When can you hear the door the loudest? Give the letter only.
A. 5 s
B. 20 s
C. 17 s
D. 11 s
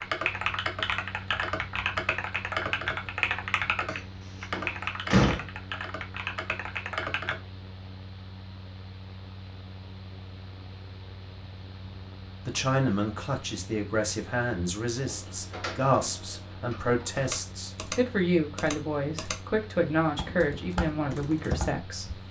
A.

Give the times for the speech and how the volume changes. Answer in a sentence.
You can hear the speech from 12.4 to 22.2 s, at a steady volume.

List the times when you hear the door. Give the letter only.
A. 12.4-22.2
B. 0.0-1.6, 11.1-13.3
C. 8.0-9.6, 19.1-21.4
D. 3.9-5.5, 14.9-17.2
D.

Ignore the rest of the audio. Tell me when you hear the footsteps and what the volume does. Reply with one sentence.
The footsteps can't be heard in this clip.